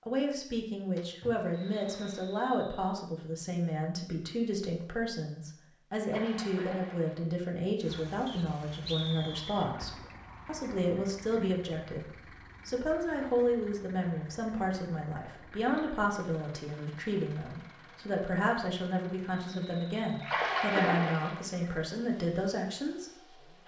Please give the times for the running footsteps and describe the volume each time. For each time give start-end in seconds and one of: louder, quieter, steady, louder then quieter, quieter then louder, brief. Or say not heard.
not heard.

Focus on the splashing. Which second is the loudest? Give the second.
21 s.